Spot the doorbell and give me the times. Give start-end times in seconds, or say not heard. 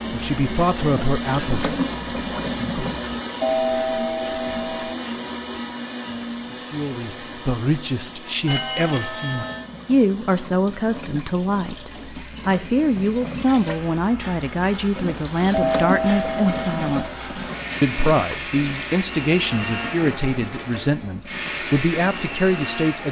3.4-5.0, 8.4-9.7, 15.5-16.9.